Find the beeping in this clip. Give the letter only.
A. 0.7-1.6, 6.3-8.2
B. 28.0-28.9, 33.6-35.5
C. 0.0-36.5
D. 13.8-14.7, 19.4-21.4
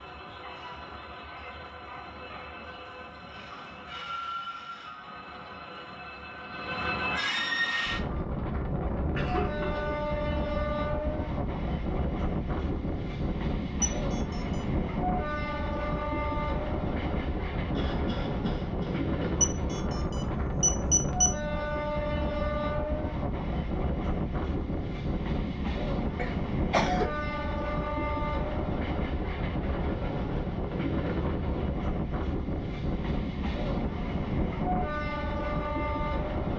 D.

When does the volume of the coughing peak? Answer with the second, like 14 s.
27 s.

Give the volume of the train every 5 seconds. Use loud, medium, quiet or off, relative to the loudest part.
medium, loud, loud, loud, loud, loud, loud, loud.